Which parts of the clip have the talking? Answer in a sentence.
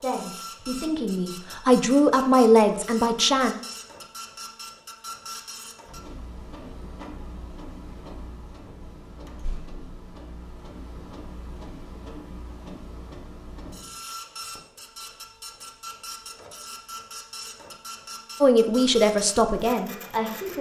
The talking can be heard from 0.0 to 3.5 s and from 18.4 to 20.5 s.